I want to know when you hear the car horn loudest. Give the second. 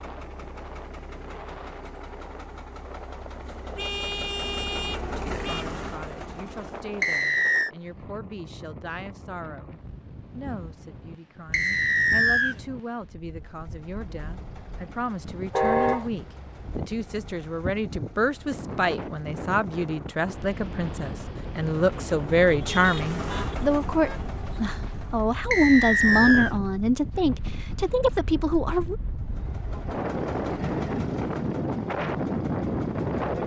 16 s.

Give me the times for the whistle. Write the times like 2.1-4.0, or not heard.
7.0-7.7, 11.5-12.6, 25.5-26.5.